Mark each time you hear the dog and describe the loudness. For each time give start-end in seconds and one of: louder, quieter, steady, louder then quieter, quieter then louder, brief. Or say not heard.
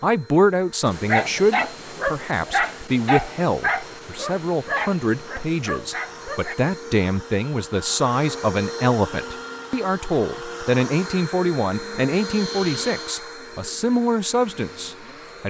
0.8-6.5 quieter.